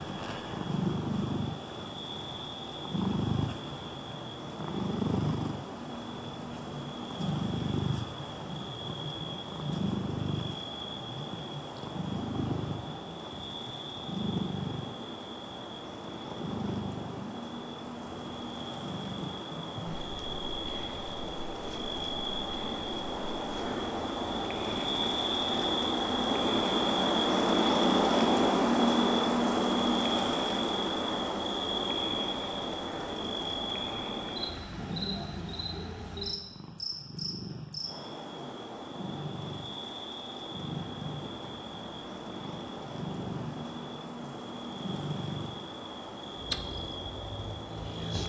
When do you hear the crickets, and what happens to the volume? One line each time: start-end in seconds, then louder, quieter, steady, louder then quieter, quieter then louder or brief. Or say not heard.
0.0-48.2 louder then quieter.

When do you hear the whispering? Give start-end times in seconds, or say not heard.
not heard.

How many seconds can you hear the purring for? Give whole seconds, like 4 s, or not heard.
48 s.